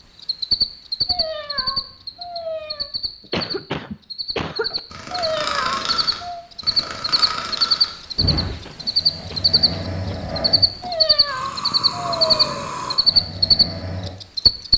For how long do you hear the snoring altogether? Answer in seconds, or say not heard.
9 s.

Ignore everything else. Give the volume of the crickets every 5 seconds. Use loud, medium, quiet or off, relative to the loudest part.
medium, loud, loud.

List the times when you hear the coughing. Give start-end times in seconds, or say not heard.
3.2-4.8, 8.2-10.3.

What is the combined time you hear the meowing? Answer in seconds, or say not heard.
5 s.